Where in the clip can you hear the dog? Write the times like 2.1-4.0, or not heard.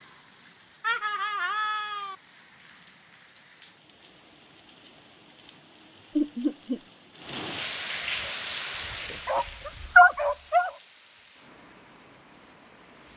8.0-10.7.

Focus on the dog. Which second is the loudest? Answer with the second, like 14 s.
10 s.